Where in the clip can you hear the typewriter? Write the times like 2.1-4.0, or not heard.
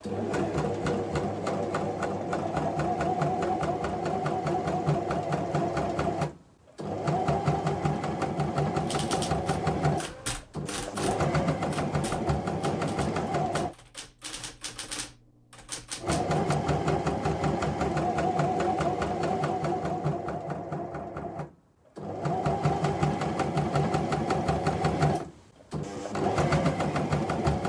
8.8-16.4.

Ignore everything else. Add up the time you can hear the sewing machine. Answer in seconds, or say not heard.
25 s.